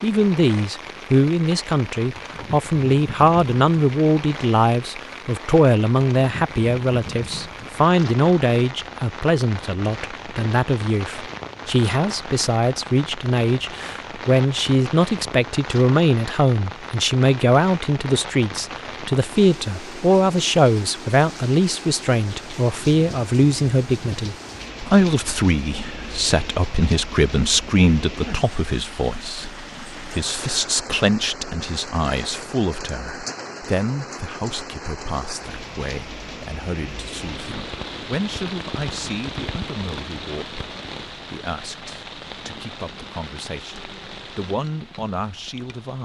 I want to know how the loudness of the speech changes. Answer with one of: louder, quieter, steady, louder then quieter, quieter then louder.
quieter.